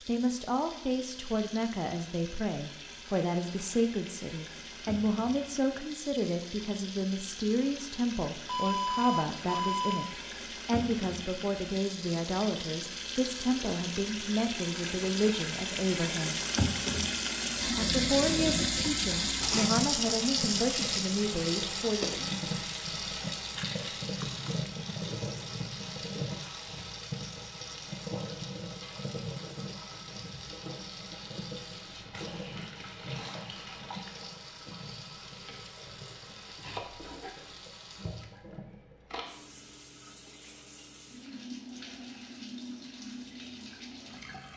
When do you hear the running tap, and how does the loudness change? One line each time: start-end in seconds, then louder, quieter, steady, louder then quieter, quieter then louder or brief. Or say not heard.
0.0-44.5 louder then quieter.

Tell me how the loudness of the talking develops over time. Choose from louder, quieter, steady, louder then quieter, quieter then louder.
steady.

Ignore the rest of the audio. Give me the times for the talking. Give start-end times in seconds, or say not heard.
0.0-16.4, 17.6-22.2.